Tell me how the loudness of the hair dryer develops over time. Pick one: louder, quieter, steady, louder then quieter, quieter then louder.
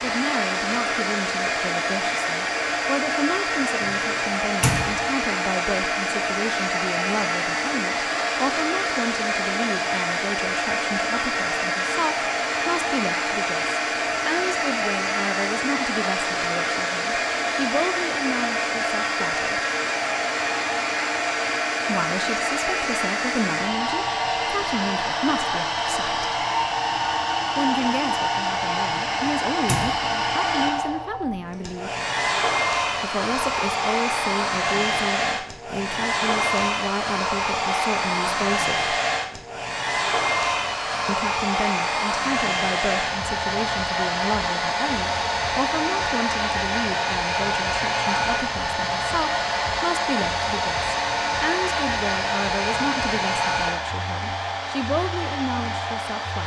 steady.